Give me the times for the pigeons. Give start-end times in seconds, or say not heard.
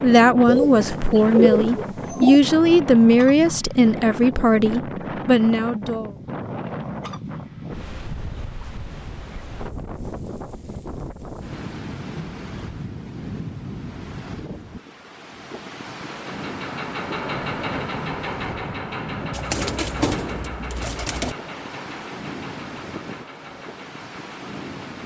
0.5-2.4, 19.3-21.4.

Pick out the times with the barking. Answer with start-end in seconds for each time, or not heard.
not heard.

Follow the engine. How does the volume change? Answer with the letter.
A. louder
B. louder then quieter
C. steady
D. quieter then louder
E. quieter
E.